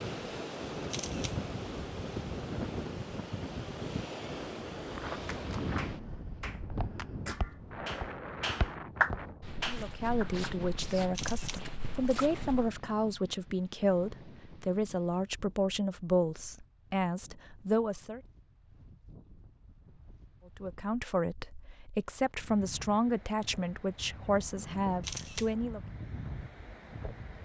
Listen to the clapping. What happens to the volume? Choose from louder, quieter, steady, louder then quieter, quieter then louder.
louder then quieter.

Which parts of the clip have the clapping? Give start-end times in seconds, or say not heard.
5.3-10.4.